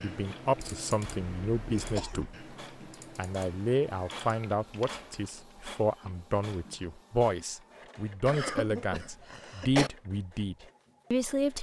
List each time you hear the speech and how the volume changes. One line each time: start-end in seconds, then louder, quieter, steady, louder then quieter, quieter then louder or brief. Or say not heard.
0.0-2.5 brief
3.1-11.5 steady.